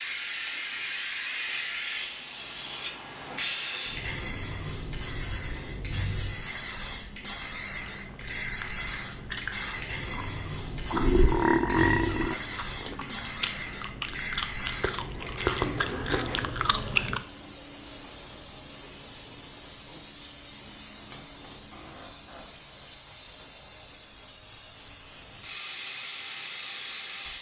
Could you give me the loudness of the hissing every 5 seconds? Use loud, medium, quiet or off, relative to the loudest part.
loud, loud, loud, medium, medium, loud.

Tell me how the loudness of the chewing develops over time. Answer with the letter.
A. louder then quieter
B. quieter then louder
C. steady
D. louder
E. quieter
D.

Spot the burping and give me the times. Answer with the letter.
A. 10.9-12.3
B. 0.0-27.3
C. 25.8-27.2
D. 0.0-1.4
A.